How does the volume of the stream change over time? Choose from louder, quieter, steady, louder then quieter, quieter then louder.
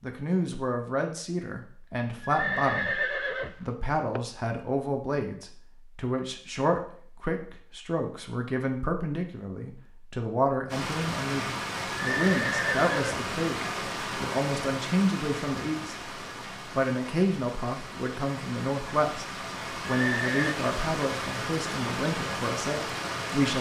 quieter then louder.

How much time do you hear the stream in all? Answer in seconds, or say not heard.
13 s.